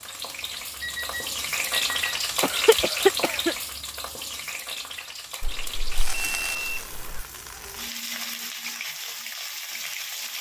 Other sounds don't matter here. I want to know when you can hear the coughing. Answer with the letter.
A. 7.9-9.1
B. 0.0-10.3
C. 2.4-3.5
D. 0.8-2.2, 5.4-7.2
C.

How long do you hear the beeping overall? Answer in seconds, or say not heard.
3 s.